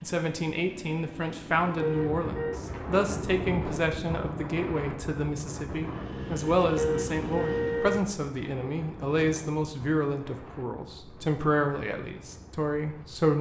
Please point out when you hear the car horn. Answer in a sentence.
The car horn can be heard from 1.8 to 2.6 s and from 6.8 to 8.1 s.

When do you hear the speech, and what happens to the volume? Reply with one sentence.
The speech can be heard from 0.0 to 13.3 s, at a steady volume.